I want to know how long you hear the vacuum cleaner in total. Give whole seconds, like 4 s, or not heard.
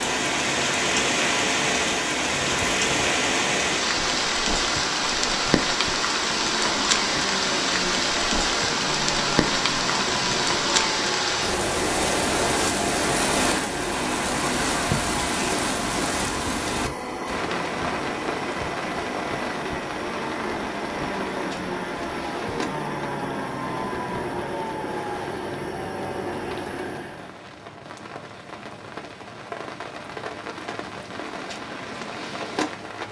27 s.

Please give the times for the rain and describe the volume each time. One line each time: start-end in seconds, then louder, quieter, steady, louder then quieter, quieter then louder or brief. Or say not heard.
0.0-33.0 quieter.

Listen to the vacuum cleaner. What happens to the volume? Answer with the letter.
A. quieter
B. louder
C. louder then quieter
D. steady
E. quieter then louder
D.